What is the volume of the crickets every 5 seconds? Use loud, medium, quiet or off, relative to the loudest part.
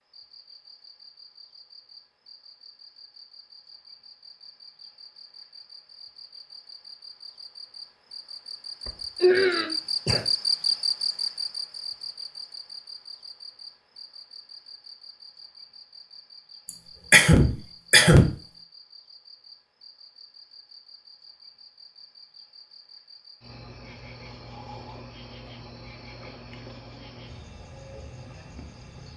quiet, medium, loud, quiet, quiet, quiet.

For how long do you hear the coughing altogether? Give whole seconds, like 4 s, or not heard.
3 s.